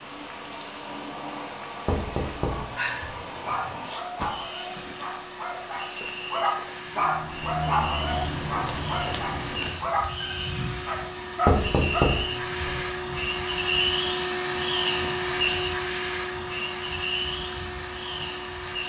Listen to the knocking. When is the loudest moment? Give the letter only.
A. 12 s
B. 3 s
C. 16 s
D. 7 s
A.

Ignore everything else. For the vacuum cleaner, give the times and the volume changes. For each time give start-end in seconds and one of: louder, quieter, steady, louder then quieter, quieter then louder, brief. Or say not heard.
0.0-18.8 louder.